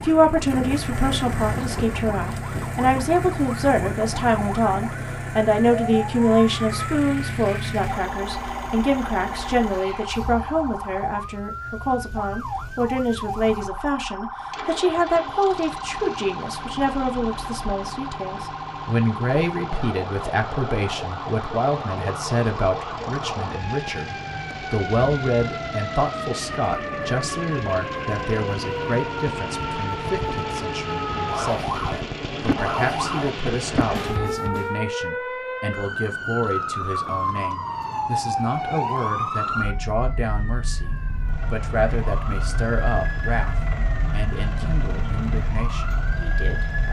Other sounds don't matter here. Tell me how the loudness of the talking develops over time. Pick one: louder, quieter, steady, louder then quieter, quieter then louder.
quieter.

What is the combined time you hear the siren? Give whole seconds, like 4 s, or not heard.
47 s.